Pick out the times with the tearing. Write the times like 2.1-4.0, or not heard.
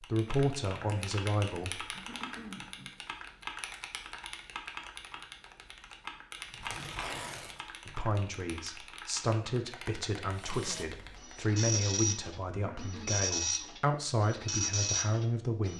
6.5-8.0.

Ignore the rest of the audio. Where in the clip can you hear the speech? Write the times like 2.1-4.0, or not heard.
0.0-1.9, 7.8-15.7.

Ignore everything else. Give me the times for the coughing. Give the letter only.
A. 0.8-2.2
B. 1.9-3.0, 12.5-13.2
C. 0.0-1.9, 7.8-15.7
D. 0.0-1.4
B.